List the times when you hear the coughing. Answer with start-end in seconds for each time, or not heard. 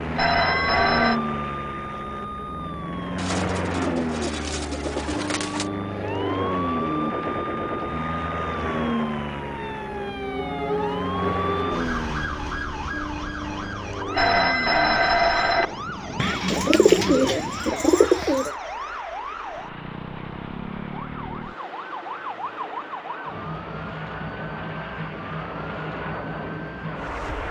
not heard.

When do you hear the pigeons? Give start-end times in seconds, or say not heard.
3.1-5.7, 16.1-18.6.